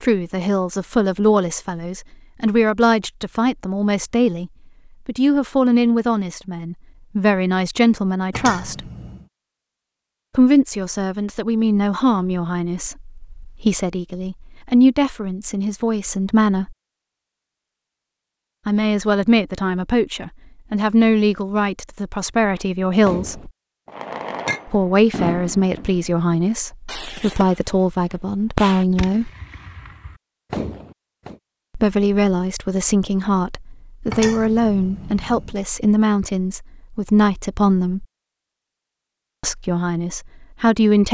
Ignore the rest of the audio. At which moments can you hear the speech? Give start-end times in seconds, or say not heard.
0.0-8.8, 10.3-16.8, 18.6-23.5, 24.6-29.3, 31.8-38.0, 39.4-41.0.